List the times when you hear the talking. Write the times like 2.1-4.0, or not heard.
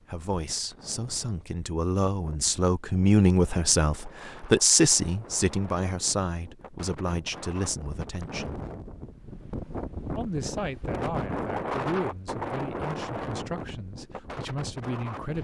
0.0-8.6, 10.2-15.3.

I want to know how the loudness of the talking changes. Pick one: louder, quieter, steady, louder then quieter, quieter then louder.
louder then quieter.